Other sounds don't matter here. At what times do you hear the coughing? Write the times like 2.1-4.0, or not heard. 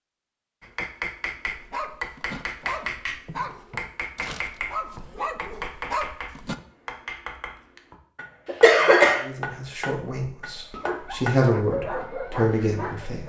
8.4-9.2.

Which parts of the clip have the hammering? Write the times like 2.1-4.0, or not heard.
0.6-11.3.